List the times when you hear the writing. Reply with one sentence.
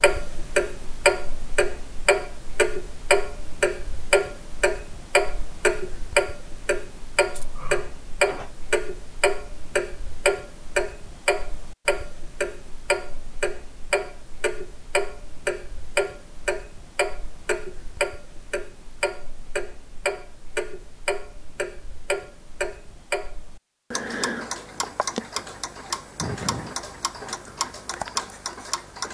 The writing can't be heard in this clip.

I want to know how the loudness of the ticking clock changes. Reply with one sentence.
The volume of the ticking clock goes down.